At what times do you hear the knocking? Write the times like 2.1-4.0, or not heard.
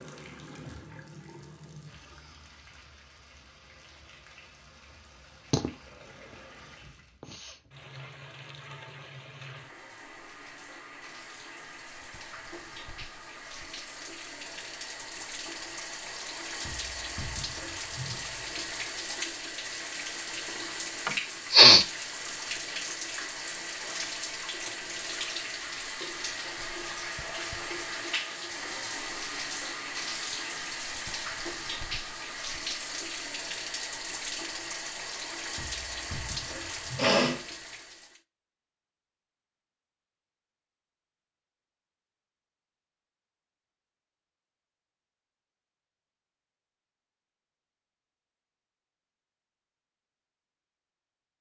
not heard.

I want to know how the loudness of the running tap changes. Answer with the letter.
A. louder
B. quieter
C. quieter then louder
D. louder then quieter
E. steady
A.